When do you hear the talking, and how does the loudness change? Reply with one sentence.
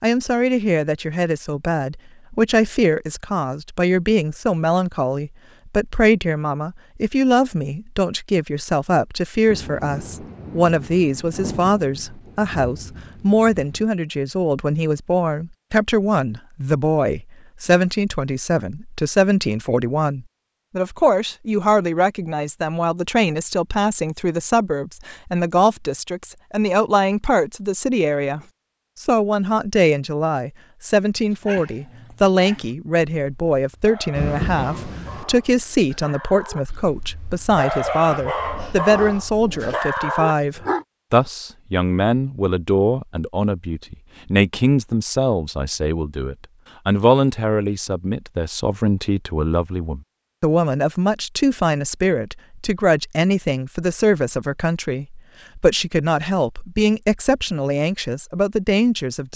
You can hear the talking from 0.0 to 59.3 s, at a steady volume.